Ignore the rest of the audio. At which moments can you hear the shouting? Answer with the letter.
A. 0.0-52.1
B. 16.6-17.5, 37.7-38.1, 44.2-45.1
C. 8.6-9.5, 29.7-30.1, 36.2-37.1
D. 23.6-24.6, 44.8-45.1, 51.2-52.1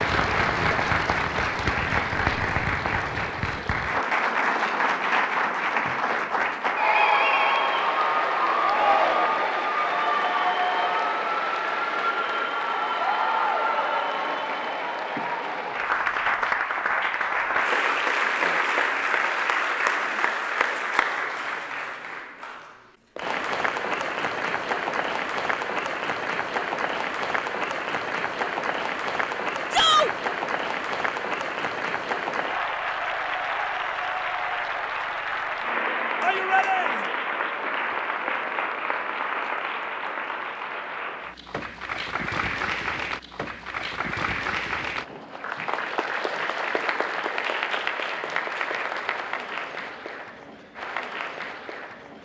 C.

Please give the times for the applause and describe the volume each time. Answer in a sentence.
The applause can be heard from 0.0 to 52.1 s, getting quieter.